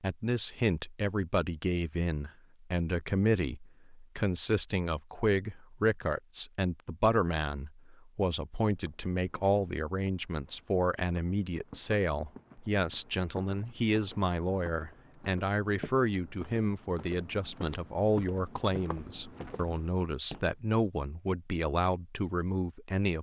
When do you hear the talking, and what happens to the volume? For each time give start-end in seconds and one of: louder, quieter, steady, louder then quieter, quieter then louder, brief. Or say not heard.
0.0-23.1 steady.